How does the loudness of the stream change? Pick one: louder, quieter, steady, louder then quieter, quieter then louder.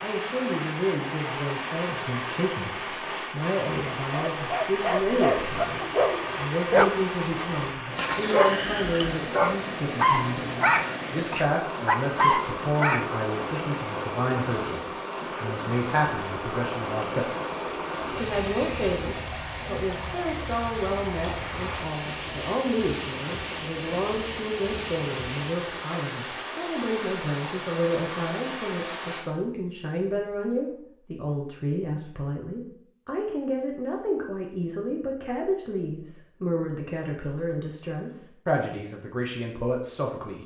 steady.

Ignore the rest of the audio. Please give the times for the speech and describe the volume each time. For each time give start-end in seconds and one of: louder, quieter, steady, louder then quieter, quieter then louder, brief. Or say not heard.
0.0-40.4 steady.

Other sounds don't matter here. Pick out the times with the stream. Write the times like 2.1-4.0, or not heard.
0.0-29.2.